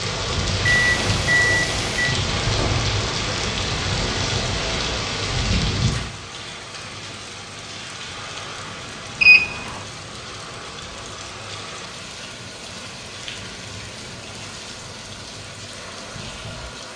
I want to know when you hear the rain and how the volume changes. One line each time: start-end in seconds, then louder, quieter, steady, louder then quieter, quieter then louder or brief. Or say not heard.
0.0-16.9 quieter.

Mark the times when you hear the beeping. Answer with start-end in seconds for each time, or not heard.
0.7-2.1, 9.2-9.8.